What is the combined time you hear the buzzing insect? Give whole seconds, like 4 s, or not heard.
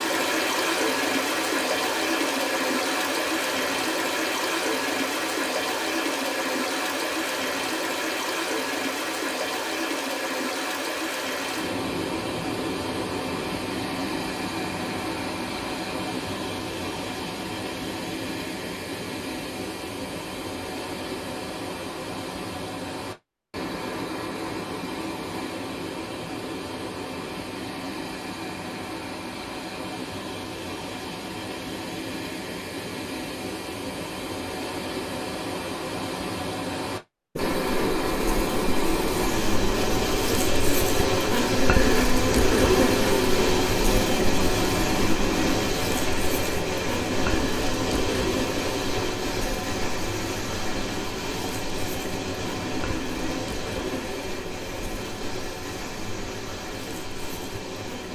21 s.